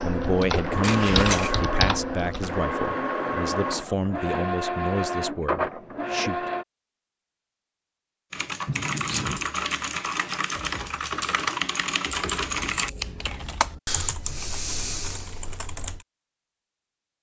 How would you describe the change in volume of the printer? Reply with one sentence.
The volume of the printer stays about the same.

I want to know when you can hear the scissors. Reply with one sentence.
You can hear the scissors from 0.8 to 1.6 s, from 8.7 to 9.4 s and from 12.3 to 13.8 s.